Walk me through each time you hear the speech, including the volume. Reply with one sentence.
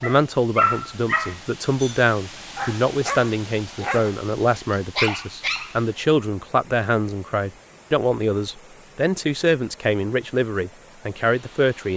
You can hear the speech from 0.0 to 11.9 s, at a steady volume.